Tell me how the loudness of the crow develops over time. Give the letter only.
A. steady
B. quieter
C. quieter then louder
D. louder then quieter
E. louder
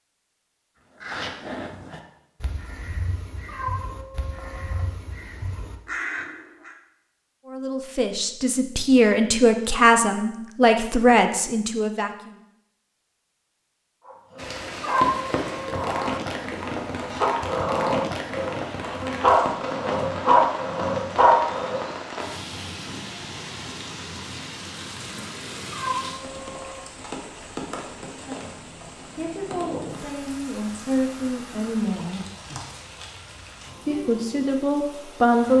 C.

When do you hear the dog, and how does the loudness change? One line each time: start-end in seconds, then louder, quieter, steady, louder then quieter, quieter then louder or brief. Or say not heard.
14.0-21.8 louder.